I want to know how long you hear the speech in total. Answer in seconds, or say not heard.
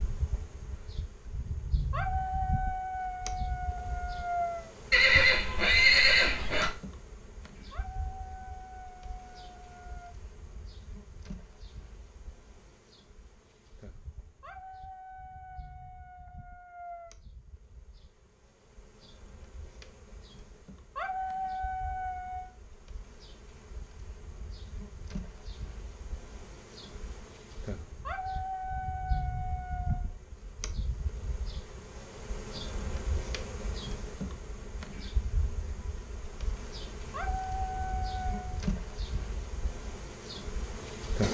not heard.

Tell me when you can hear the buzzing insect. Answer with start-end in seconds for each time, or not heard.
0.0-41.2.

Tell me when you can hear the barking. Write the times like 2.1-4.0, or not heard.
1.9-4.7, 7.7-10.1, 14.4-17.1, 20.9-22.5, 28.1-30.1, 37.1-38.6.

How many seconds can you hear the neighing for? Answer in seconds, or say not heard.
2 s.